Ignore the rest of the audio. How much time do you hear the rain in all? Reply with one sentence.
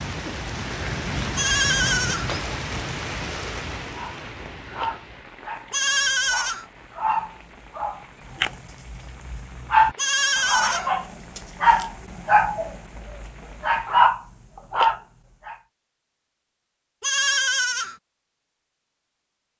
The rain can be heard for 14 seconds in total.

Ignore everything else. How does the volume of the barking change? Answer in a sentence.
The loudness of the barking goes up.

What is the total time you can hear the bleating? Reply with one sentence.
The bleating can be heard for 4 seconds in total.